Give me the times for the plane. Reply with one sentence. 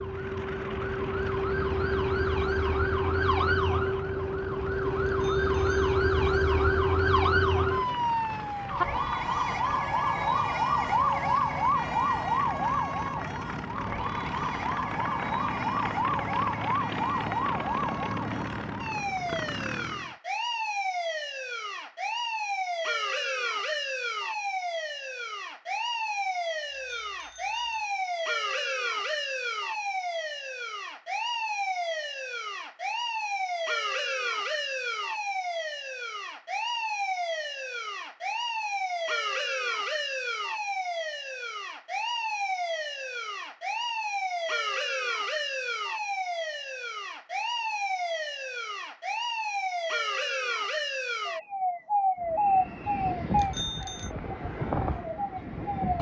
You can hear the plane from 0.0 to 20.1 s and from 52.1 to 55.9 s.